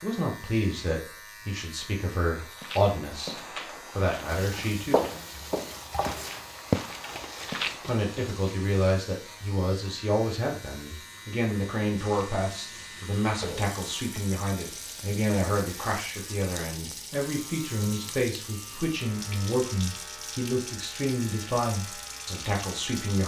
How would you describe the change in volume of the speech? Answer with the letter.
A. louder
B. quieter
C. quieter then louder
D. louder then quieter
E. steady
E.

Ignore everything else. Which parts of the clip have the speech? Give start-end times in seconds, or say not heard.
0.0-5.0, 7.8-23.2.